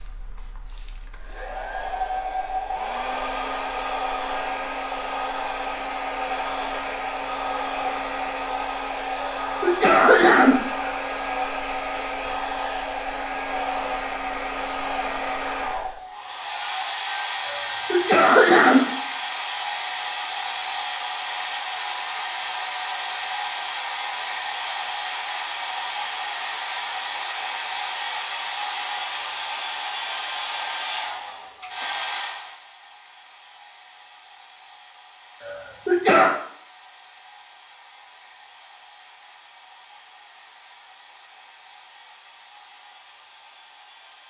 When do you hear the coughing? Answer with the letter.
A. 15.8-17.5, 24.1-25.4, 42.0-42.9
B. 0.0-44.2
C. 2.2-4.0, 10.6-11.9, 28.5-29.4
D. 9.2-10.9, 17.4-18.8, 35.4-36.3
D.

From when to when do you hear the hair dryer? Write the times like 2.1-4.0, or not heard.
0.0-44.2.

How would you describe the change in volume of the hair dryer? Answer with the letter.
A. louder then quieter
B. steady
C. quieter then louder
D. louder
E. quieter
E.